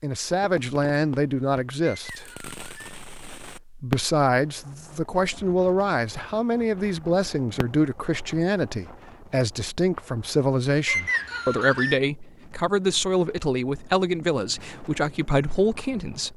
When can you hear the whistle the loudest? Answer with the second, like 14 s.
11 s.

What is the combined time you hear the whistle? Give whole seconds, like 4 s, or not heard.
2 s.